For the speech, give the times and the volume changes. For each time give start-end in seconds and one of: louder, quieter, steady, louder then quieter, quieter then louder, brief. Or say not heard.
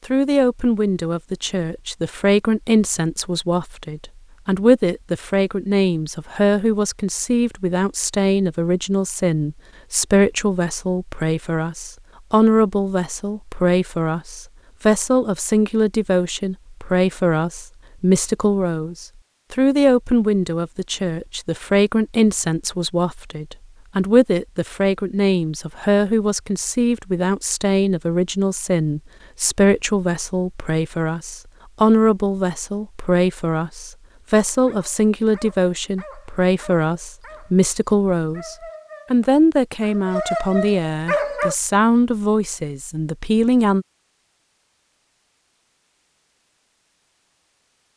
0.1-43.9 steady.